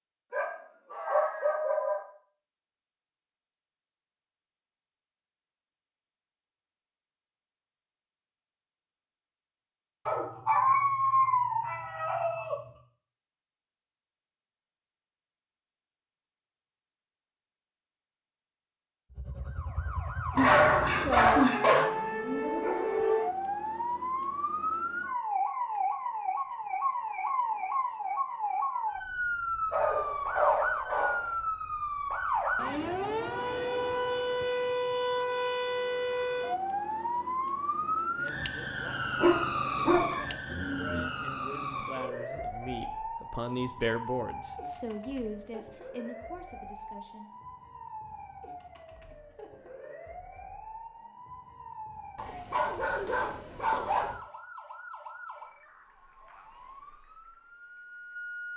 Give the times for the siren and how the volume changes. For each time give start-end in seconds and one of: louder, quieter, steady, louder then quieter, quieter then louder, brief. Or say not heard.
19.1-58.5 quieter.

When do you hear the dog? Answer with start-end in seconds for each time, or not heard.
0.3-2.0, 10.1-12.7, 20.4-21.9, 29.7-31.2, 39.1-41.1, 52.1-54.1.